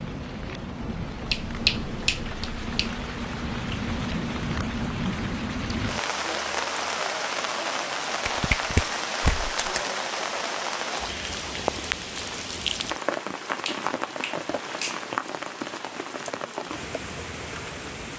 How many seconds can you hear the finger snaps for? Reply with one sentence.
You can hear the finger snaps for 5 seconds altogether.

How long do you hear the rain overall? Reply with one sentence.
The rain can be heard for 18 seconds in total.